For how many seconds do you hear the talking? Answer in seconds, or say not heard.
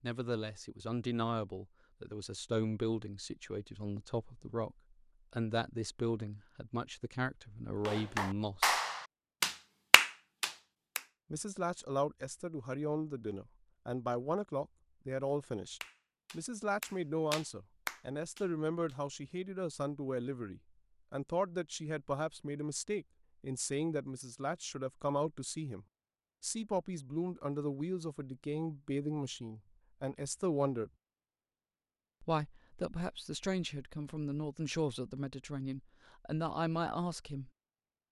34 s.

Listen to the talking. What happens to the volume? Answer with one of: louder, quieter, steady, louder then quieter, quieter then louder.
steady.